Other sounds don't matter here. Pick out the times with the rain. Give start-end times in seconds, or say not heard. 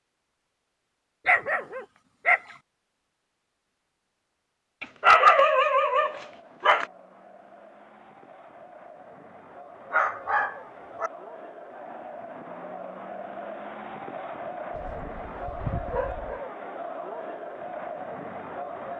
not heard.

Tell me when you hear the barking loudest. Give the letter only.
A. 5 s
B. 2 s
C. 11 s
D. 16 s
A.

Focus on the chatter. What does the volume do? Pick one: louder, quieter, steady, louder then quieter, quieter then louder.
louder.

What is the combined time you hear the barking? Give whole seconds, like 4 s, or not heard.
6 s.